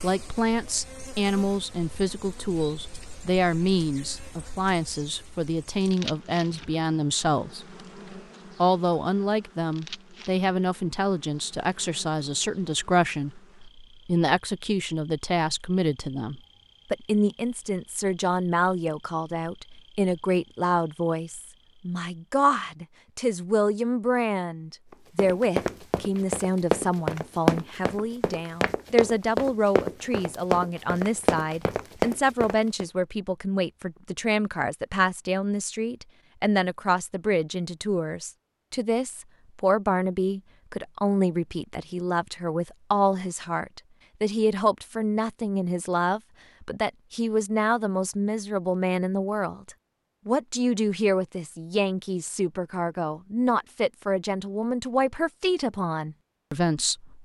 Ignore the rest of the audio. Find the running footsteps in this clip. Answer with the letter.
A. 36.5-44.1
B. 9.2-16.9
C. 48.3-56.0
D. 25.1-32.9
D.